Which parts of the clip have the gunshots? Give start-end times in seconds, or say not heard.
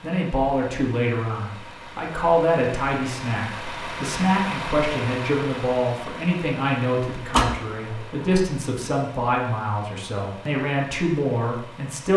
7.3-8.4.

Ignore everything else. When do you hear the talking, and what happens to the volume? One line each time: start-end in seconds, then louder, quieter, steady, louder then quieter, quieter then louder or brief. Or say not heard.
0.0-12.1 steady.